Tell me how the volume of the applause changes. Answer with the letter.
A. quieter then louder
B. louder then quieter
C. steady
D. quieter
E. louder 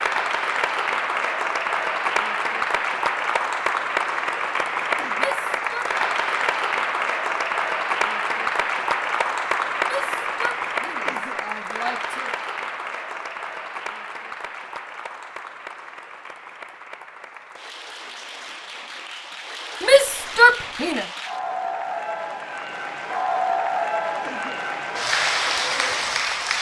A.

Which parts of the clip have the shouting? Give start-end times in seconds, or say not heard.
5.2-5.9, 9.8-12.3, 19.8-21.1.